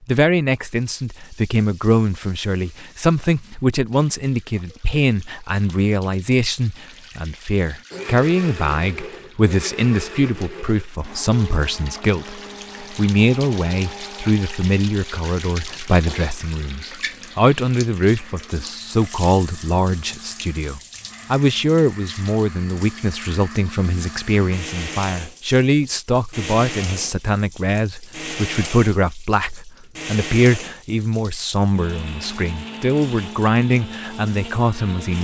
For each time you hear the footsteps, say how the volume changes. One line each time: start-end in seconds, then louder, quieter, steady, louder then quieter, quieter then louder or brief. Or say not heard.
not heard.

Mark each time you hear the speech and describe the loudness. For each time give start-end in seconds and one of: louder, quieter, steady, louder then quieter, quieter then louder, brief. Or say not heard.
0.1-35.1 steady.